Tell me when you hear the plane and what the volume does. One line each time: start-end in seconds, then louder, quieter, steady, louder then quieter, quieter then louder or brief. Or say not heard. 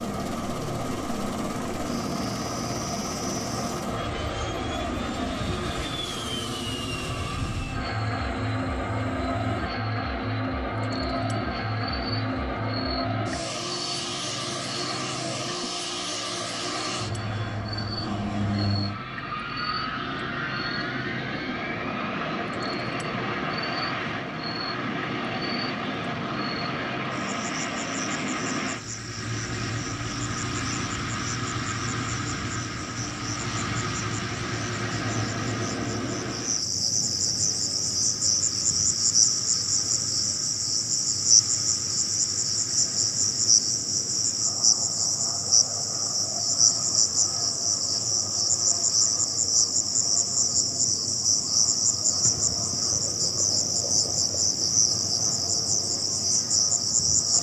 0.0-57.3 quieter.